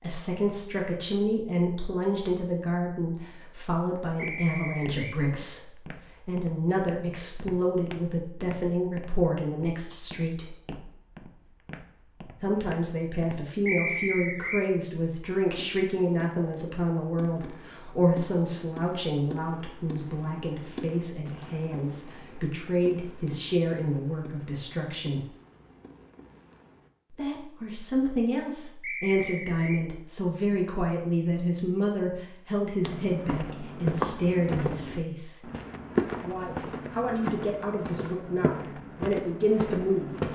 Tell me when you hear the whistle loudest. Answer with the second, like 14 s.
14 s.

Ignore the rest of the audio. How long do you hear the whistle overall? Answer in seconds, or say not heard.
3 s.